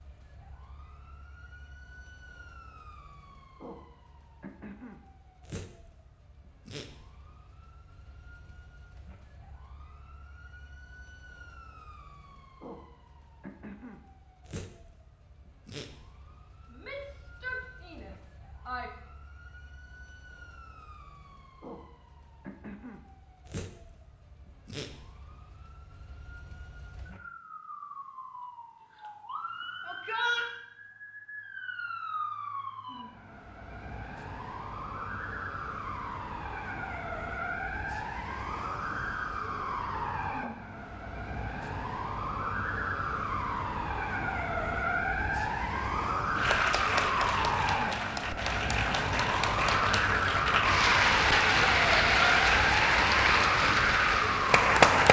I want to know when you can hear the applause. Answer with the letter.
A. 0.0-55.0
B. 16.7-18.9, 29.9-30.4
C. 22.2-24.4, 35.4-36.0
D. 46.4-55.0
D.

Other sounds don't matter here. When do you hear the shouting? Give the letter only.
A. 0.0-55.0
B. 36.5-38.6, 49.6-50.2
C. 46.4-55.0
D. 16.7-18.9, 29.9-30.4
D.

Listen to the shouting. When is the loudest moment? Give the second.
30 s.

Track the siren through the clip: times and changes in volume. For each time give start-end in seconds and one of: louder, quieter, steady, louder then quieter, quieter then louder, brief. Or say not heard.
0.0-55.0 louder.